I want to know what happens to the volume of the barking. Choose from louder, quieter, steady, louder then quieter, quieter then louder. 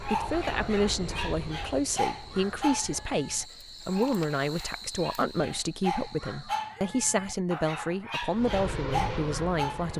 quieter then louder.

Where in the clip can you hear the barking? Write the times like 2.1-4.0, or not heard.
0.0-9.9.